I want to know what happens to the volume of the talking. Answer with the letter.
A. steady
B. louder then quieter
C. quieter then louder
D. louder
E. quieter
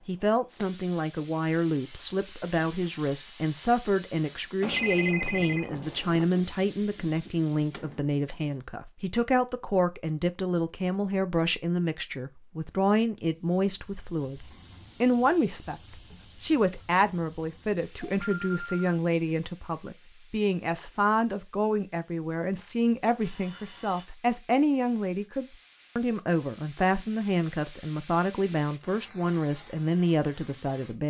A.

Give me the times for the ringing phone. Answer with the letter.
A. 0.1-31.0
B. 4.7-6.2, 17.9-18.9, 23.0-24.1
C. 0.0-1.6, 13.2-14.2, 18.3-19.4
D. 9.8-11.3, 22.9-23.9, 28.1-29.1
B.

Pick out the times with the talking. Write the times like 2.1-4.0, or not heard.
0.1-31.0.